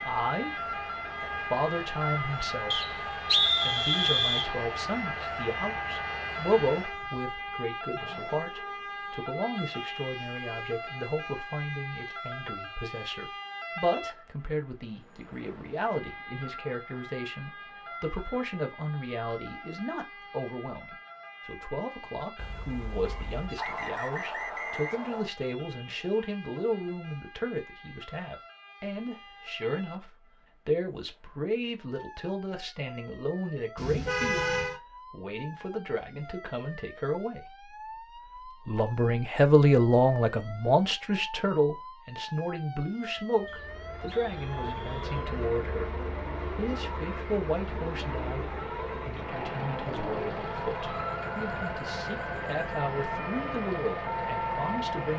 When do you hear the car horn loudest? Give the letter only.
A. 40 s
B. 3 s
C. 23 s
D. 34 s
D.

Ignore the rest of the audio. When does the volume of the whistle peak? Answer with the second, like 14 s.
3 s.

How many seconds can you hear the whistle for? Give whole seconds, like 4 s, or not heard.
5 s.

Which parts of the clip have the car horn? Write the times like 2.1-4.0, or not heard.
22.4-23.6, 33.8-34.8.